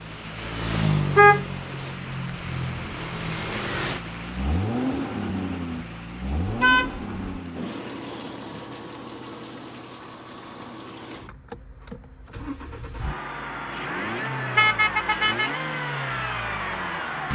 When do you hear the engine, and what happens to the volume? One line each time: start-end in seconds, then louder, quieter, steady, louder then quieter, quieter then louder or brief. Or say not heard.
0.0-17.3 quieter then louder.